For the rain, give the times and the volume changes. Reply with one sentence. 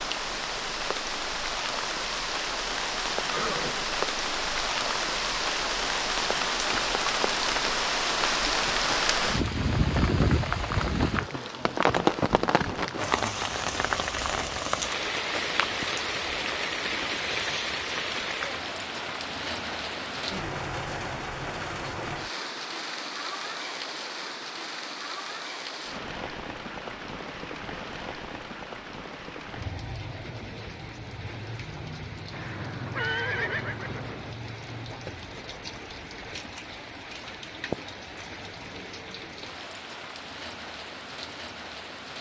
You can hear the rain from 0.0 to 42.1 s, getting quieter.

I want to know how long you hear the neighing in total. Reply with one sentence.
The neighing can be heard for 3 seconds in total.